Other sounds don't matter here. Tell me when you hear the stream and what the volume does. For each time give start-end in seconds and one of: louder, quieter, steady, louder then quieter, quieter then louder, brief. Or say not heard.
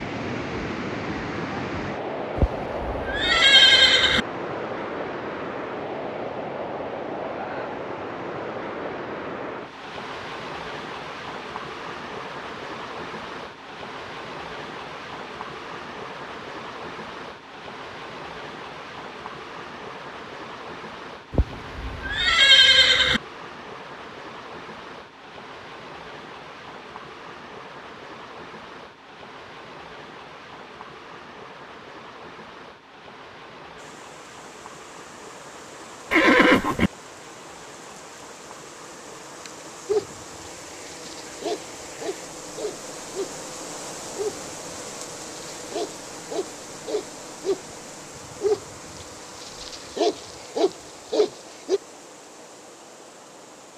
0.0-53.7 quieter.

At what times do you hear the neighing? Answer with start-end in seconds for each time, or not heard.
2.4-4.2, 21.3-23.2, 36.1-36.9.